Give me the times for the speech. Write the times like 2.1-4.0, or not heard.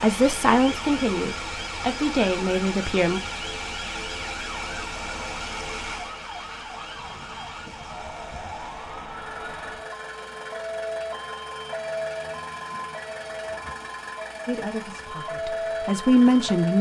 0.0-3.2, 14.4-16.7.